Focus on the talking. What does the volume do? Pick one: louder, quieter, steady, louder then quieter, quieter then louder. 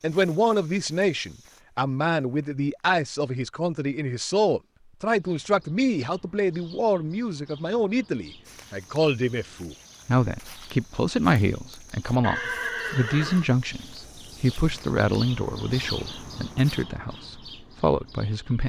steady.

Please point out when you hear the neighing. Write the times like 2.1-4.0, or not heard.
12.2-13.5.